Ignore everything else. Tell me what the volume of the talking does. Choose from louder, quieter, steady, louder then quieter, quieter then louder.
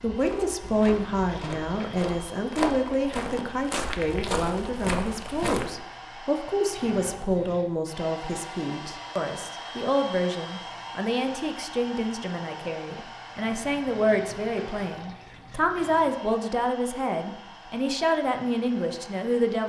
steady.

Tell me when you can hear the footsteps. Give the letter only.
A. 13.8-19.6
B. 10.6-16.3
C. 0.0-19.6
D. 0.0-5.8
D.